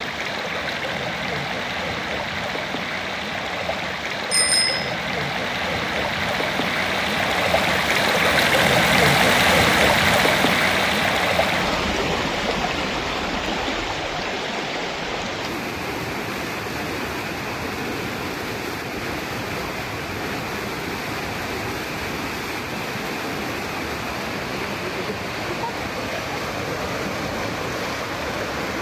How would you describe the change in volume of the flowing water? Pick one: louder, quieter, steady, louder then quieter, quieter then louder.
louder then quieter.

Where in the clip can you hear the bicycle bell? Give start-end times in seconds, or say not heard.
4.3-4.9.